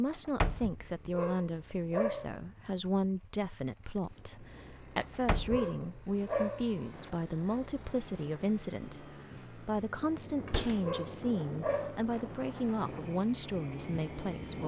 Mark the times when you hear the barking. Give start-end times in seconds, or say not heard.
1.1-2.4, 5.5-6.7, 10.8-12.1.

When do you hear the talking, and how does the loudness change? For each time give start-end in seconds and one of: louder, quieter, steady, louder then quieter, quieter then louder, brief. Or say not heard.
0.0-14.6 steady.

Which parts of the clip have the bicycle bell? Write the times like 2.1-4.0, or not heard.
not heard.